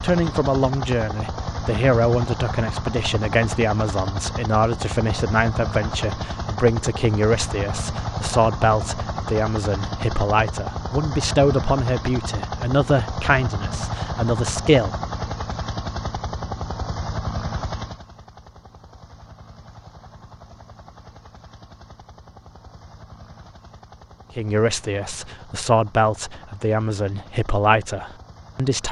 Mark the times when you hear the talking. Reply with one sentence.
You can hear the talking from 0.0 to 14.9 s and from 24.4 to 28.8 s.